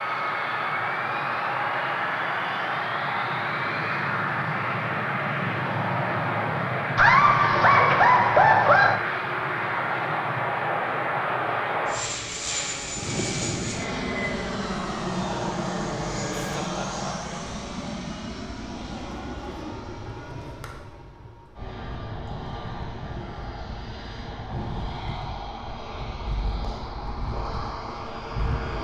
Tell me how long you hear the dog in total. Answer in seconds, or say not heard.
not heard.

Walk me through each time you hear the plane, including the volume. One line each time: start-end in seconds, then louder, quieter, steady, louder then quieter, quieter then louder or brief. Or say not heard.
0.0-28.8 quieter.